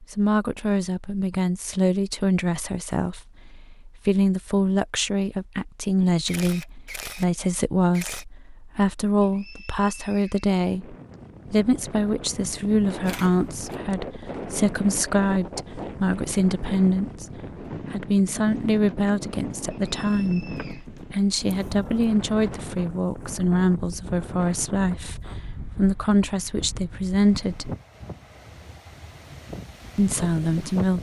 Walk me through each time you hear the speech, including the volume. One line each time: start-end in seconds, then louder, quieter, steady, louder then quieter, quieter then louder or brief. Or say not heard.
0.0-27.8 steady
29.9-30.9 brief.